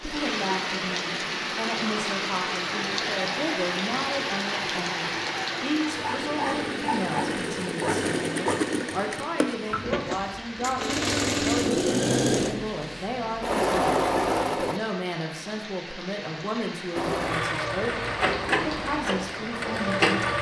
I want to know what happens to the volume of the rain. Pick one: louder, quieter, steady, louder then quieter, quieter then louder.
quieter.